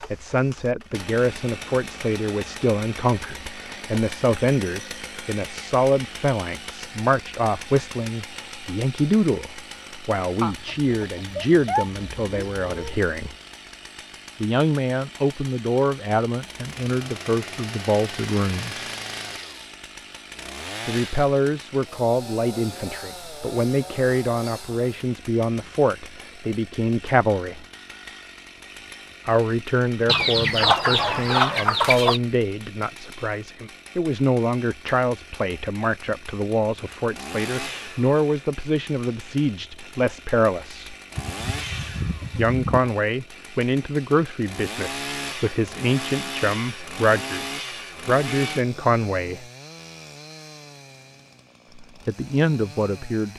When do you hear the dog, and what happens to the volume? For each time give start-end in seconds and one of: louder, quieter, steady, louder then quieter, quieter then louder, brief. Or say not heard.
not heard.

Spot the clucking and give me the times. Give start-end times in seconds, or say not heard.
10.4-13.0, 30.1-32.2, 41.1-42.9.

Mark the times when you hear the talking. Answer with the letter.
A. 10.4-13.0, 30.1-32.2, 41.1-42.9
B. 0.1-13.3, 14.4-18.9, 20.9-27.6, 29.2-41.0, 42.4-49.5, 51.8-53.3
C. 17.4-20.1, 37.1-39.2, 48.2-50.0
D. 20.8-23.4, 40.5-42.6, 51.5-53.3
B.